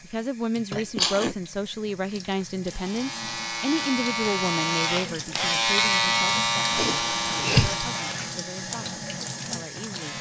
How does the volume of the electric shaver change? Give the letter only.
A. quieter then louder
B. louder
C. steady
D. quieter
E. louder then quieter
E.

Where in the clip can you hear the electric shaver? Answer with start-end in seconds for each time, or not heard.
2.6-10.1.